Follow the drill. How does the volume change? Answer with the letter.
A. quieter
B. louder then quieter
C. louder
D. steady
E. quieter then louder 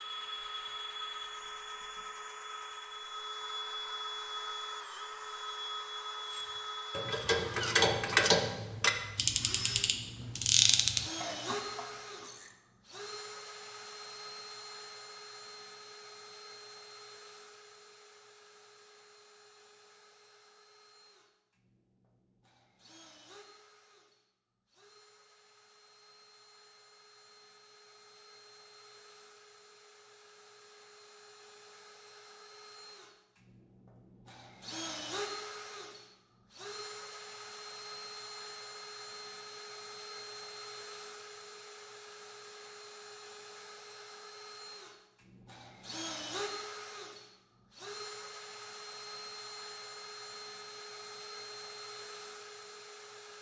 E.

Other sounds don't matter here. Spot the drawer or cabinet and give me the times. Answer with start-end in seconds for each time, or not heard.
not heard.